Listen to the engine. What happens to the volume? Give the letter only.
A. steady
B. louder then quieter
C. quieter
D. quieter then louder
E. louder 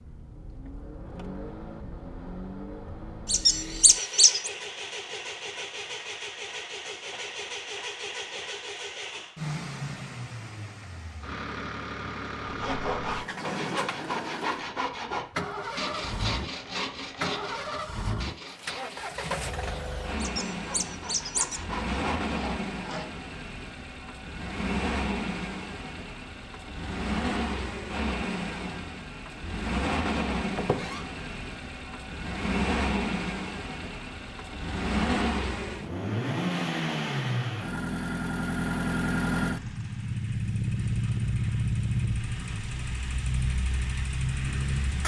E.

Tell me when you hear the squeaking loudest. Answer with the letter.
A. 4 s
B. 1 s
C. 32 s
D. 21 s
A.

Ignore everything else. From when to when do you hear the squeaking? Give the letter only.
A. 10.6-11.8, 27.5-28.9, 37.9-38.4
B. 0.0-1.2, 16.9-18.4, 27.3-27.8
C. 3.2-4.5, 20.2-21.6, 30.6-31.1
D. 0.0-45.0
C.